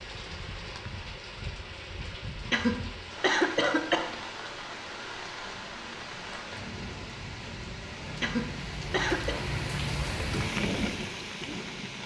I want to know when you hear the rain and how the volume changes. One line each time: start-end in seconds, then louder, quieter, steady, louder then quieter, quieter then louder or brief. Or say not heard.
0.0-12.0 louder.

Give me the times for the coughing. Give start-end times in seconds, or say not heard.
2.5-4.2, 8.2-9.4.